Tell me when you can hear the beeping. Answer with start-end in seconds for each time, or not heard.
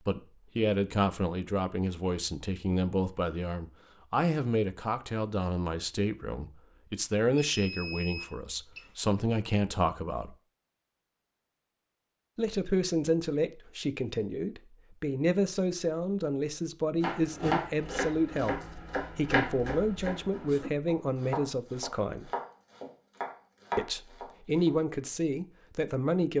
7.5-8.9.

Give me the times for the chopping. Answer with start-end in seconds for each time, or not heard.
17.0-24.7.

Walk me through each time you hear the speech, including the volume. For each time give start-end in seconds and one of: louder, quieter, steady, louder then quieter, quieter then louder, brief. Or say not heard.
0.1-10.3 steady
12.3-22.3 steady
23.8-26.3 brief.